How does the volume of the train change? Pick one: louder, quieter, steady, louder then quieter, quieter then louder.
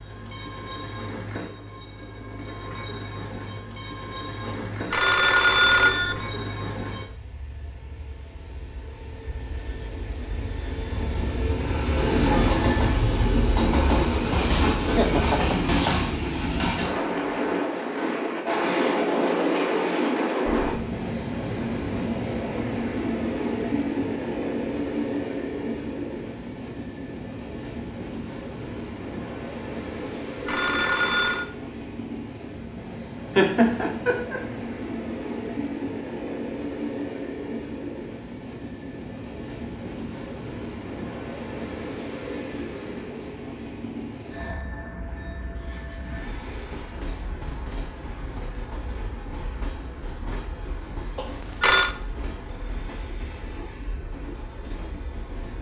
louder then quieter.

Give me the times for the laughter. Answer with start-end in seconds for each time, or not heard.
14.7-16.0, 33.4-34.4.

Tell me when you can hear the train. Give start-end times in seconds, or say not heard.
0.0-55.5.